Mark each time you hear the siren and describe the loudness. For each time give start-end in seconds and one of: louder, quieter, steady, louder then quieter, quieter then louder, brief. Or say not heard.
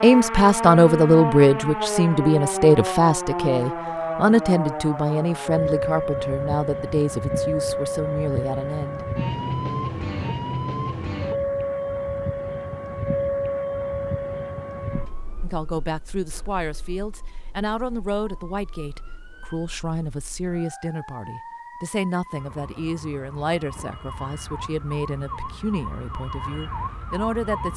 0.0-27.7 quieter then louder.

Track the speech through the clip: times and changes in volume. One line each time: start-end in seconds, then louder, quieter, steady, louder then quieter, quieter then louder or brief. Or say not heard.
0.0-9.1 quieter
15.4-27.7 steady.